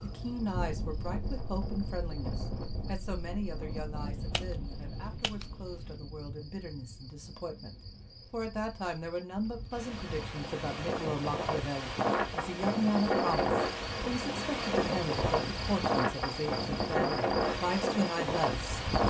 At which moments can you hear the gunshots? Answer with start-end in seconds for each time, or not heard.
4.0-6.0.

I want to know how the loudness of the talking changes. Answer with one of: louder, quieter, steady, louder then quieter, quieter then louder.
quieter then louder.